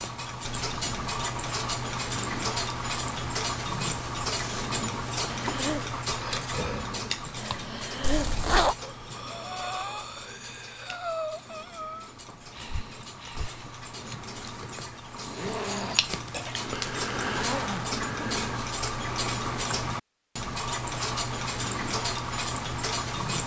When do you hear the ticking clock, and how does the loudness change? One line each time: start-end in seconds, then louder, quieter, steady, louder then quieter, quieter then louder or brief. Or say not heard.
0.0-23.4 quieter then louder.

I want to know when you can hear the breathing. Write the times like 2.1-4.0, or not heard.
5.3-13.7.